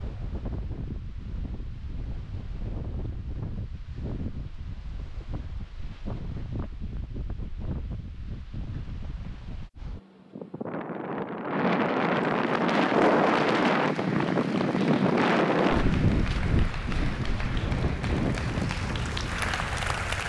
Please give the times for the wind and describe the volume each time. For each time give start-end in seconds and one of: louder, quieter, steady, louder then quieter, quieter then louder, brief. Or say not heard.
0.0-20.2 louder then quieter.